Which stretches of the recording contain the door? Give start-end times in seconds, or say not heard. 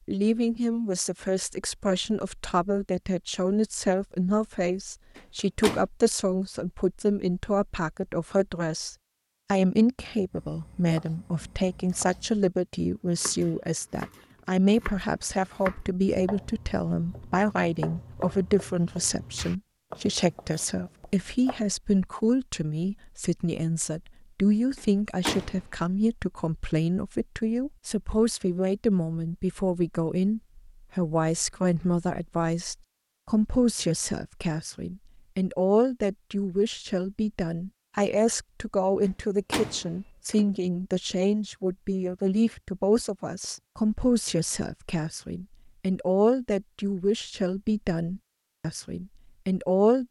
5.2-5.8, 24.8-25.6, 39.0-40.5.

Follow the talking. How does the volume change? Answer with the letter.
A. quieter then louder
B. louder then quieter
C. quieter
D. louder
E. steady
E.